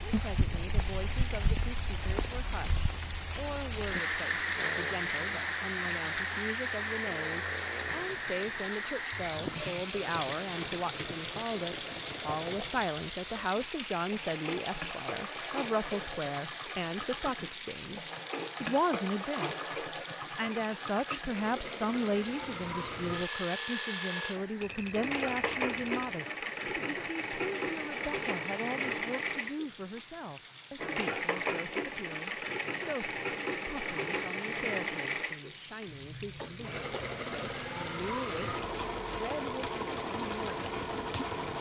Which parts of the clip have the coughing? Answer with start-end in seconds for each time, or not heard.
35.9-37.9.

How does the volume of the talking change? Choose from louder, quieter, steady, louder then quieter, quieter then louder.
louder then quieter.